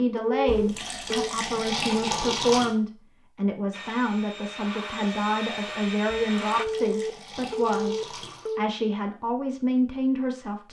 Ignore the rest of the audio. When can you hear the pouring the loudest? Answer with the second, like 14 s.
2 s.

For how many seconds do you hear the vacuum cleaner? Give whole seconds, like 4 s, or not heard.
3 s.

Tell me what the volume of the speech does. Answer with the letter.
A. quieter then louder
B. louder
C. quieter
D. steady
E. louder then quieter
D.